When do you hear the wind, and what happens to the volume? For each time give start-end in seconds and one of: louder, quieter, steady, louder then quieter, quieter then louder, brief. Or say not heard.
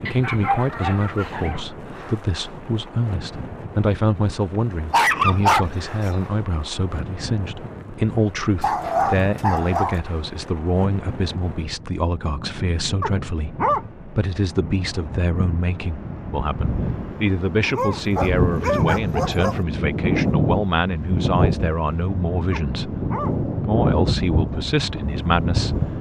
0.0-25.9 louder.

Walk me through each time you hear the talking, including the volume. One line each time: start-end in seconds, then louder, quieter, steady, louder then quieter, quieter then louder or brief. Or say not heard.
0.0-25.9 steady.